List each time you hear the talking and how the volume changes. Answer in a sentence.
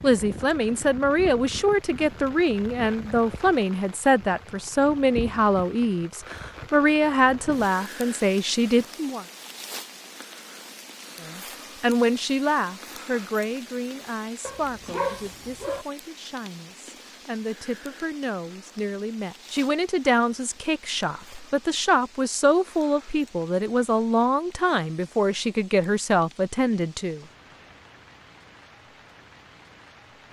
The talking can be heard from 0.0 to 9.2 s, at a steady volume; and from 11.2 to 27.2 s, getting quieter then louder.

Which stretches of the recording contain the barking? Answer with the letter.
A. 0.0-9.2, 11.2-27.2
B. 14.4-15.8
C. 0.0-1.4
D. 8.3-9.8
B.